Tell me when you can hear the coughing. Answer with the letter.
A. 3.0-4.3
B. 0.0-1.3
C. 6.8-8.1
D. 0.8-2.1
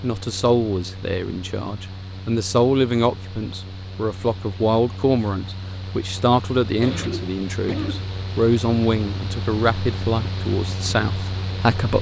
C.